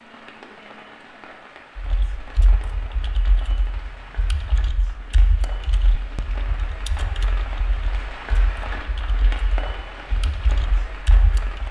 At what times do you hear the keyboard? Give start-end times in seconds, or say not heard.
1.8-11.6.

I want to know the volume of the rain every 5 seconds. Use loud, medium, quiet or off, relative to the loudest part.
medium, loud, loud.